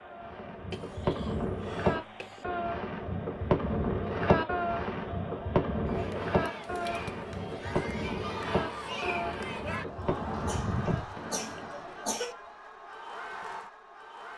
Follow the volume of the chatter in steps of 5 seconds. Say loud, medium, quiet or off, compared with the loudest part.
medium, loud, loud.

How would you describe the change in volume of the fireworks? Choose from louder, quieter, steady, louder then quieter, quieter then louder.
quieter.